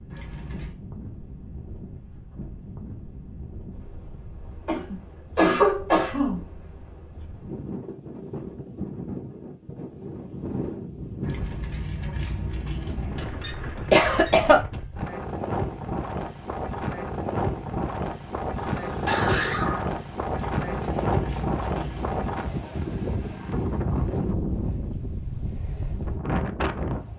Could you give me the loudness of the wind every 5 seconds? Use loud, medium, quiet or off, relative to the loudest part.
quiet, medium, medium, loud, loud, loud.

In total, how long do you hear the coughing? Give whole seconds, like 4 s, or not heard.
4 s.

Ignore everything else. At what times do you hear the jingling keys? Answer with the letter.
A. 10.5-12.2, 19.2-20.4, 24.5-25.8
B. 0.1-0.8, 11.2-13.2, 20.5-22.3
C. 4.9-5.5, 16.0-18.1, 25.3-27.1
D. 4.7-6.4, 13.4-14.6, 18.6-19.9
B.